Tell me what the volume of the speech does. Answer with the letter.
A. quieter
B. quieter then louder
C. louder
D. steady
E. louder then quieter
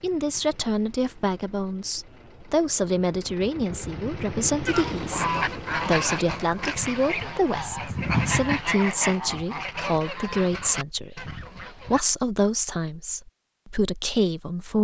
D.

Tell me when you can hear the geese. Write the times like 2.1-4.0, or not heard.
4.7-12.1.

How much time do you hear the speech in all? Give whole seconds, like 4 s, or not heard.
15 s.